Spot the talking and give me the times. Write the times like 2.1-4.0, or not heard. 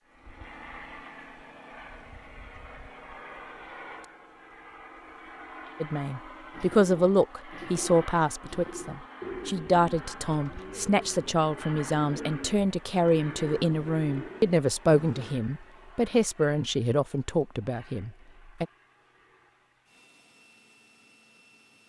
5.8-18.6.